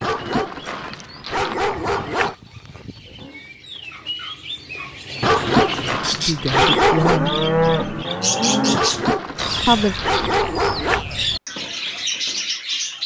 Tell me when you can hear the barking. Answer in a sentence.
You can hear the barking from 0.0 to 2.4 s, from 5.2 to 7.2 s and from 8.7 to 11.1 s.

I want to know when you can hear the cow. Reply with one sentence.
You can hear the cow from 1.7 to 3.5 s and from 7.0 to 8.8 s.